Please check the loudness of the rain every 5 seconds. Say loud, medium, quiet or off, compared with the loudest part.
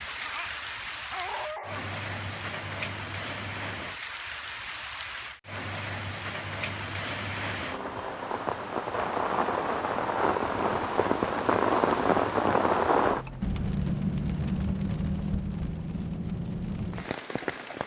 medium, medium, loud, medium.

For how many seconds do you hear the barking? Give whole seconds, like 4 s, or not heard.
2 s.